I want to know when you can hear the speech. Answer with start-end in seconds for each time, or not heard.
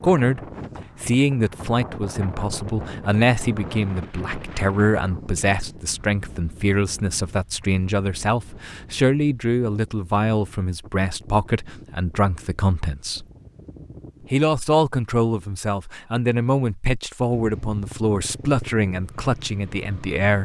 0.0-0.4, 1.0-13.2, 14.3-20.4.